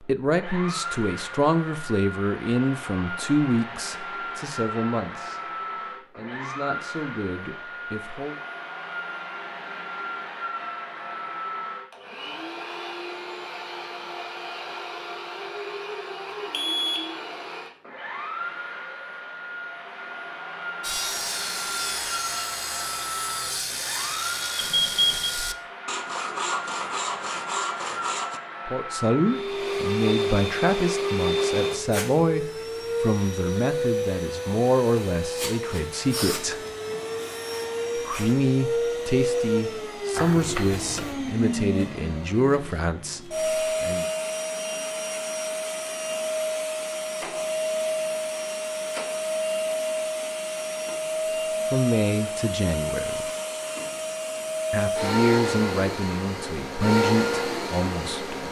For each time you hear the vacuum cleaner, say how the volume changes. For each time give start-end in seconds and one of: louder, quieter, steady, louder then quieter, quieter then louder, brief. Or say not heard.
0.0-58.4 louder.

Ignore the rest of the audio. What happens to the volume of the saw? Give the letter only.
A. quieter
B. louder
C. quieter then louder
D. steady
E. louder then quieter
D.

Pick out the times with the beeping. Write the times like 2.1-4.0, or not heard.
16.5-17.1, 24.6-25.4, 40.1-41.1.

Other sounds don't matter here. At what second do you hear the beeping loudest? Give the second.
25 s.